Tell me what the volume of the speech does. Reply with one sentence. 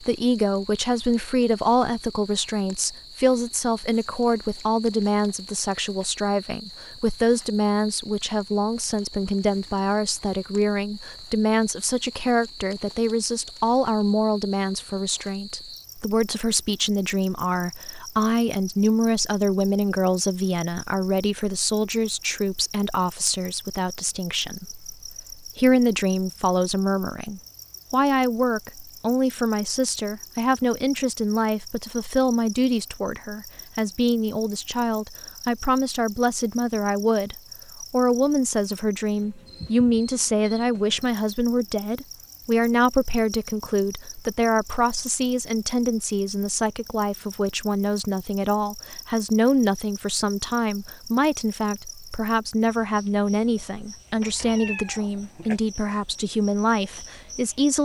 The volume of the speech stays about the same.